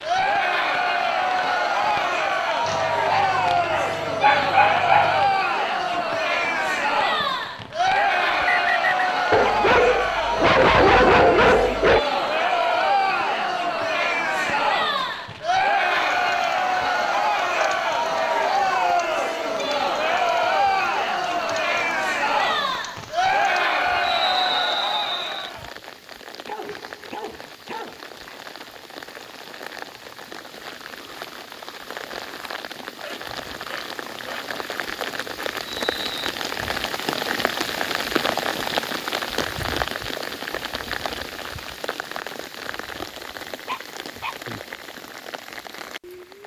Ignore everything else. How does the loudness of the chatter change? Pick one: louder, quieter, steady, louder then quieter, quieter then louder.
steady.